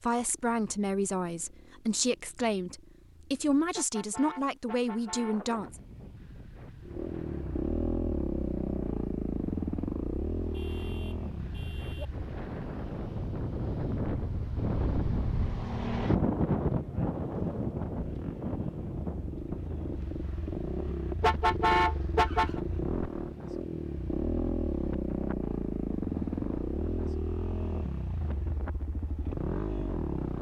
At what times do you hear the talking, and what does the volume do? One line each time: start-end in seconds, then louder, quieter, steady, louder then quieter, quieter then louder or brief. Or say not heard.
0.0-5.8 steady.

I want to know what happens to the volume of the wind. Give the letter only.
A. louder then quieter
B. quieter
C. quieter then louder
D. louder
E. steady
A.